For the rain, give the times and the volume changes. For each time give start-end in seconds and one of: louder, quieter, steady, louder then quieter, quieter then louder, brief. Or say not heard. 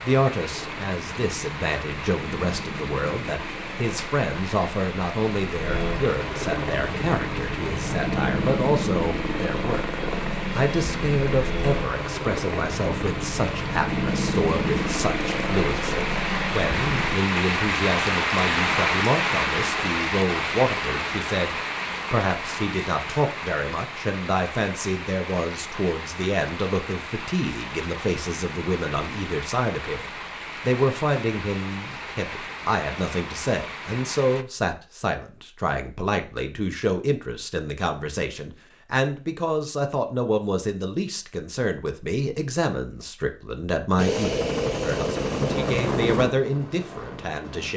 0.0-34.5 louder then quieter.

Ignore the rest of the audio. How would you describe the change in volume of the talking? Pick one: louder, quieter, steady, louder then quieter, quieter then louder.
steady.